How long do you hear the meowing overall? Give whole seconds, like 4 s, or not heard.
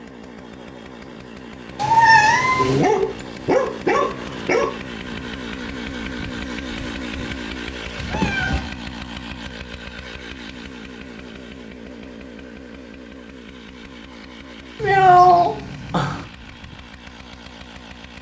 3 s.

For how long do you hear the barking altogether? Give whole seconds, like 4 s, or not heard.
2 s.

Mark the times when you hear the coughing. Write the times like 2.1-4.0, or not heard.
not heard.